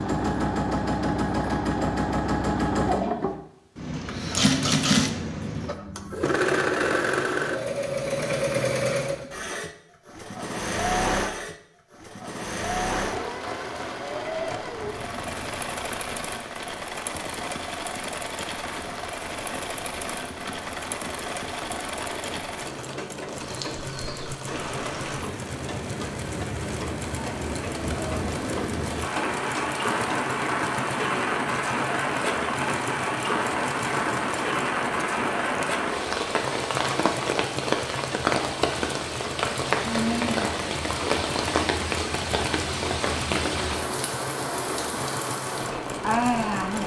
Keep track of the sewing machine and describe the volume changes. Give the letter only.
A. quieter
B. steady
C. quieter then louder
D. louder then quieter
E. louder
A.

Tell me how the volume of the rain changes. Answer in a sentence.
The loudness of the rain goes up.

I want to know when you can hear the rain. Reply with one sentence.
The rain can be heard from 13.0 to 46.8 s.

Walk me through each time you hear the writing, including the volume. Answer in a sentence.
The writing can't be heard in this clip.